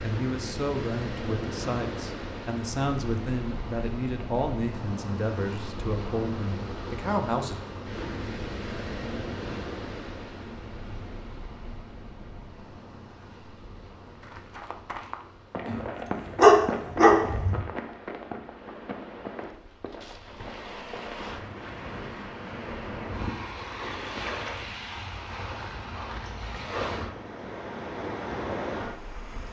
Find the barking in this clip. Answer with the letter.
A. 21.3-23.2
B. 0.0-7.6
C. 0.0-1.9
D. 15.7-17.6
D.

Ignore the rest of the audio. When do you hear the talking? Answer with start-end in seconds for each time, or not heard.
0.0-7.6.